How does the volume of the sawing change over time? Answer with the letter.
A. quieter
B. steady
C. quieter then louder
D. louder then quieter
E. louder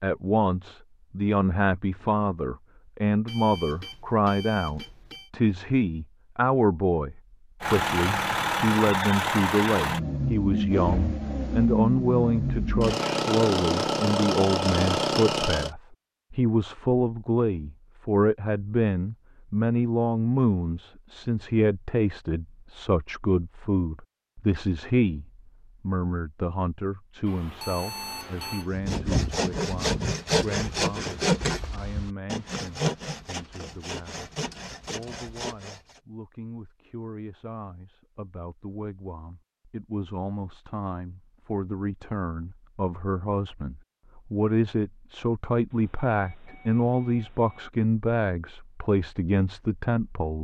A.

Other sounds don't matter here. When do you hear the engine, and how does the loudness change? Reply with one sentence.
The engine can be heard from 7.6 to 15.7 s, at a steady volume.